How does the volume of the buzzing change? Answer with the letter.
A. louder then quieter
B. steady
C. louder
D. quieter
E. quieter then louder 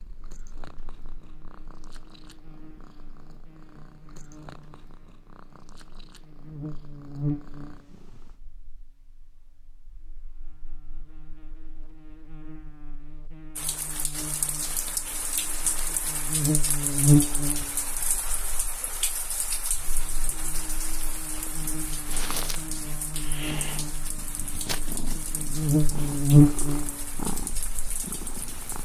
C.